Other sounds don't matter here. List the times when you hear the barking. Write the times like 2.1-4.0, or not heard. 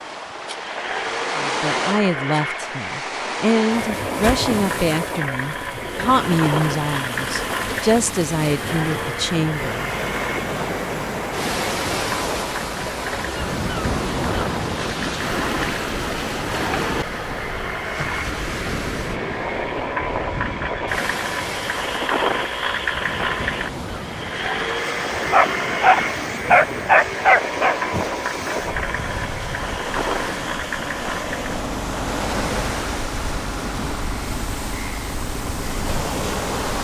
25.3-27.8.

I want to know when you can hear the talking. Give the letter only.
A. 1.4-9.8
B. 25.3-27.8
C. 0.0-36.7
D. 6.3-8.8
A.